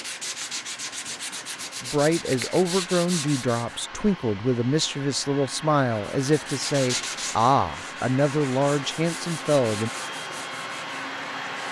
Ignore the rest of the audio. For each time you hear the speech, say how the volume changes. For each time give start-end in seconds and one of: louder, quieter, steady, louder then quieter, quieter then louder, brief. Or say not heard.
1.8-9.9 steady.